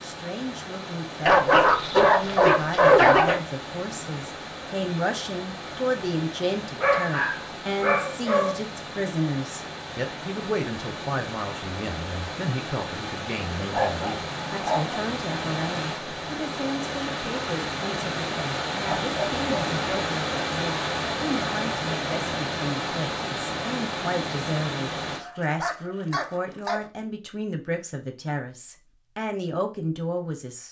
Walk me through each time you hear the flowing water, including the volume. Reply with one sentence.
You can hear the flowing water from 0.0 to 25.2 s, getting louder.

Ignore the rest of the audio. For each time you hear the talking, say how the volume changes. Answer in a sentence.
The talking can be heard from 0.0 to 30.6 s, at a steady volume.